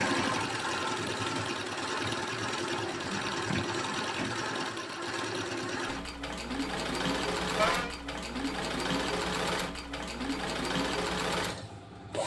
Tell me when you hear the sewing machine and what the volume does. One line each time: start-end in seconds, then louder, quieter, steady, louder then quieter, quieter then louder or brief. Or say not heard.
0.0-12.2 steady.